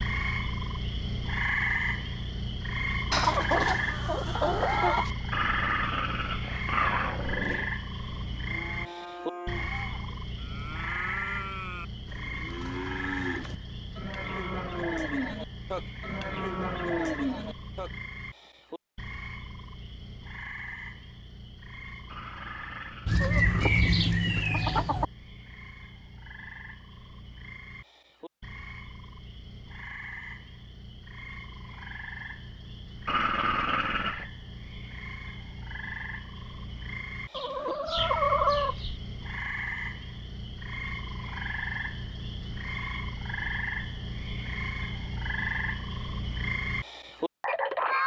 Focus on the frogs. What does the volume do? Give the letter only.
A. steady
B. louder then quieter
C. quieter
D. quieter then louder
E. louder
D.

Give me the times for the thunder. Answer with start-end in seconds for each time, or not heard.
not heard.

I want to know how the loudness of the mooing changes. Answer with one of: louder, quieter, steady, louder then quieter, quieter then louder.
louder.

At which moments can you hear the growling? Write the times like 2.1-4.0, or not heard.
5.3-7.7, 22.1-23.7, 33.0-34.2.